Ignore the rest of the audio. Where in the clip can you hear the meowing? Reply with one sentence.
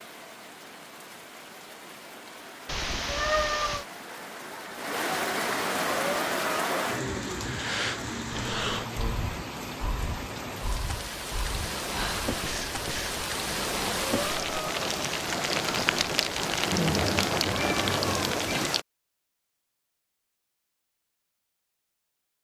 You can hear the meowing from 2.6 to 3.9 s and from 16.6 to 18.7 s.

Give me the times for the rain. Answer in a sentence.
You can hear the rain from 0.0 to 18.9 s.